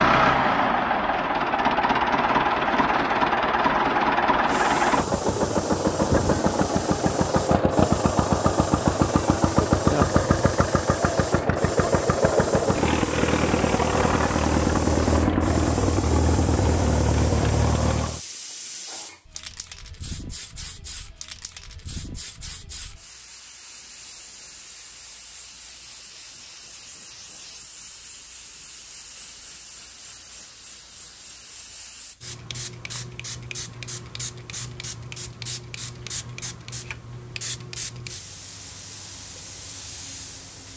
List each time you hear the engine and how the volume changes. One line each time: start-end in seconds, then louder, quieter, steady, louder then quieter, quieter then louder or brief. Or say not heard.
0.0-18.2 steady.